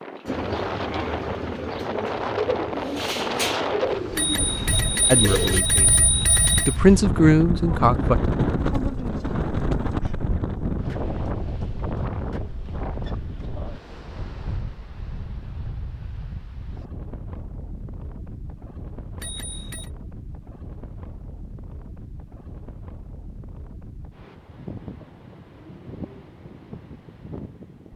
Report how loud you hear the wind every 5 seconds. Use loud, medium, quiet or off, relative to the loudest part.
loud, loud, medium, quiet, quiet, quiet.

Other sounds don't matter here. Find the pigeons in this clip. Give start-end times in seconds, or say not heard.
0.2-5.7.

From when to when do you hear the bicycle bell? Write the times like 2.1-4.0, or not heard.
4.2-6.8, 19.2-19.9.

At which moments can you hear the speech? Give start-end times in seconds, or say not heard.
5.0-6.0, 6.7-8.2.